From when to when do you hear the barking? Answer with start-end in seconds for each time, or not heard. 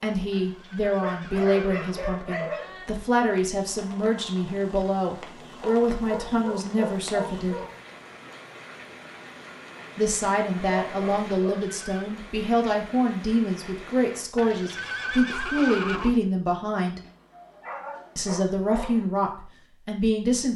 0.8-2.9, 5.4-7.7, 10.8-11.7, 17.0-19.1.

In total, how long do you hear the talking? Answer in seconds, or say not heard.
17 s.